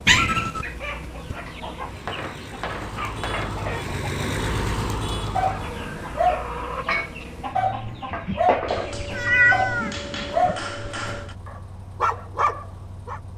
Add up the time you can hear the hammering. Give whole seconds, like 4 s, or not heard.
4 s.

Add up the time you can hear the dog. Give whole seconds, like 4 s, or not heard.
8 s.